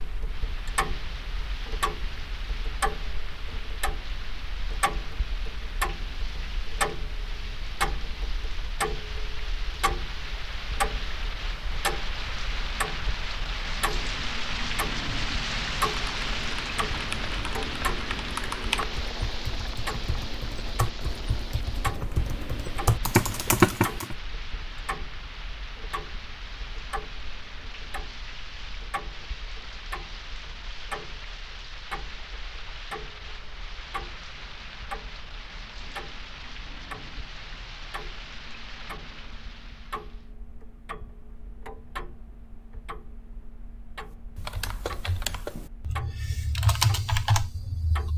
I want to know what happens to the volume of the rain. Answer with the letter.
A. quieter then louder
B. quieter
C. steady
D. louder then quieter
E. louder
D.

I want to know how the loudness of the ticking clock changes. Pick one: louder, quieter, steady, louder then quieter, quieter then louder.
quieter.